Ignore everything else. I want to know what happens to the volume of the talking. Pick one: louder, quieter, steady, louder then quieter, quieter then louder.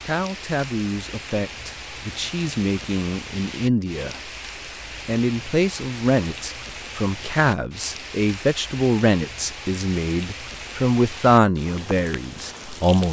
louder.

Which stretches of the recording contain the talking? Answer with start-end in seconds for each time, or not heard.
0.1-4.3, 5.0-13.0.